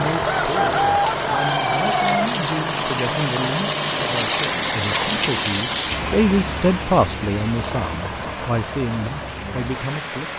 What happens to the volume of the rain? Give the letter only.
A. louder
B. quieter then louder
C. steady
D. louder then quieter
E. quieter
D.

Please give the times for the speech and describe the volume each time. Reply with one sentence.
You can hear the speech from 0.0 to 10.3 s, getting louder then quieter.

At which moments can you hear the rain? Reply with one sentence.
You can hear the rain from 0.0 to 10.3 s.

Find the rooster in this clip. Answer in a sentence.
The rooster can be heard from 0.2 to 2.3 s.